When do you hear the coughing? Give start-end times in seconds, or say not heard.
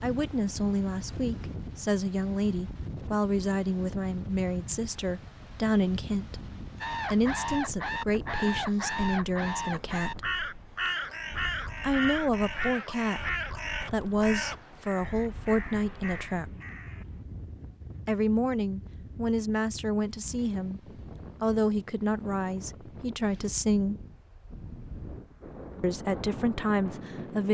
not heard.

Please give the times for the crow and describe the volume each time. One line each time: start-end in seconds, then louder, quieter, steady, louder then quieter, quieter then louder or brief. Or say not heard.
6.8-17.1 quieter.